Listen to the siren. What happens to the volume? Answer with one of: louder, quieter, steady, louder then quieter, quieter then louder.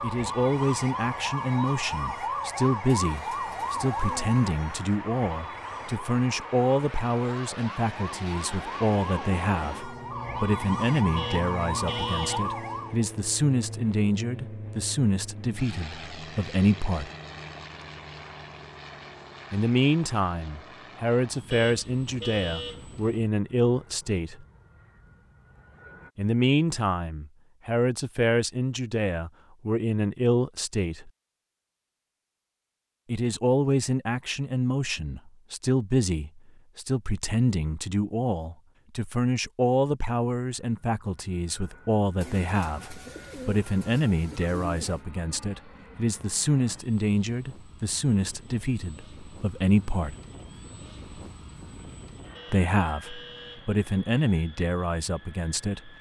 quieter then louder.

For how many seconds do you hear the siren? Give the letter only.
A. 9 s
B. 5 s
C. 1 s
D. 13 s
D.